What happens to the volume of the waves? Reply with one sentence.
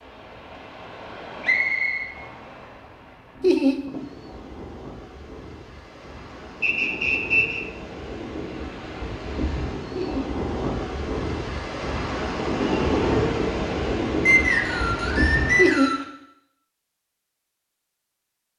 The loudness of the waves goes up.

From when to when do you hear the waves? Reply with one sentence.
The waves can be heard from 0.0 to 15.9 s.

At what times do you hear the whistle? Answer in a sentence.
You can hear the whistle from 1.4 to 2.1 s, from 6.6 to 7.7 s and from 14.2 to 16.1 s.